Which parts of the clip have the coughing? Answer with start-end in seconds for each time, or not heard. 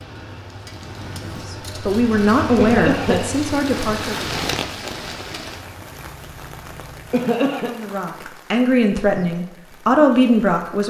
2.5-3.3, 7.1-7.7.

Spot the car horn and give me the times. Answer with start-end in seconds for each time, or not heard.
not heard.